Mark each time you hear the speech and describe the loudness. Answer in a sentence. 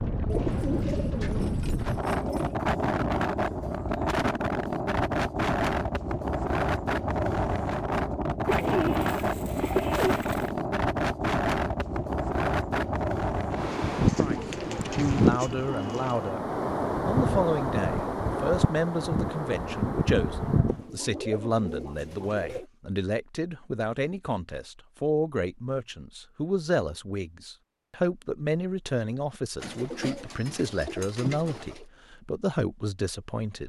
You can hear the speech briefly from 14.2 to 16.4 s; and from 17.1 to 33.6 s, at a steady volume.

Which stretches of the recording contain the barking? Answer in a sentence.
You can't hear the barking here.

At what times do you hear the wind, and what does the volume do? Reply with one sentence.
You can hear the wind from 0.0 to 20.9 s, at a steady volume.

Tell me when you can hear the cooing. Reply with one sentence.
You can hear the cooing from 0.2 to 2.5 s, from 8.4 to 10.5 s, from 13.5 to 16.3 s, from 20.6 to 22.7 s and from 29.6 to 31.9 s.